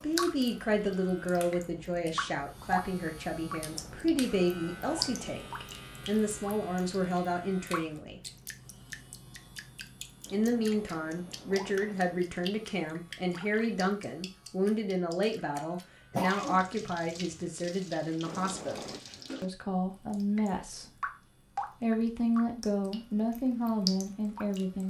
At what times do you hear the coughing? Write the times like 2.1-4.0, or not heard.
16.1-17.4.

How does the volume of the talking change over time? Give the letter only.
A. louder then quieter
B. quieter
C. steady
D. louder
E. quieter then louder
C.